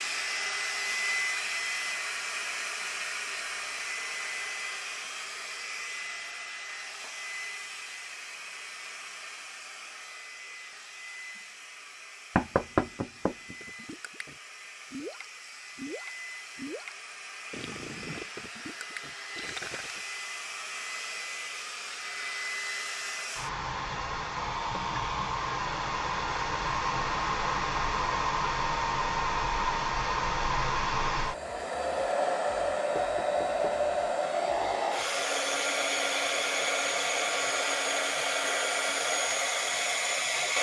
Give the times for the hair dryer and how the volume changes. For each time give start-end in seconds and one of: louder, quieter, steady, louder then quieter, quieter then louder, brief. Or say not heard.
0.0-40.5 quieter then louder.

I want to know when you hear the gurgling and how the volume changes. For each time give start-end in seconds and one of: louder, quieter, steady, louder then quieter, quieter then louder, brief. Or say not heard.
13.6-20.1 steady.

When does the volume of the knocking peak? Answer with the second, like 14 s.
13 s.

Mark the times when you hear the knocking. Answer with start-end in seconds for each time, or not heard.
12.3-13.6, 33.0-33.9.